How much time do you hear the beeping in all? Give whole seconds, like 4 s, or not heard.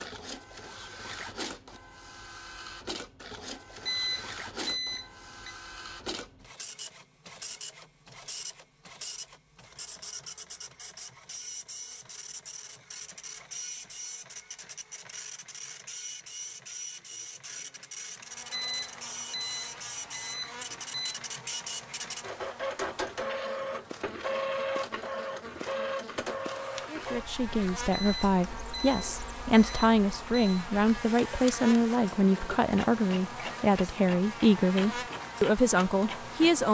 7 s.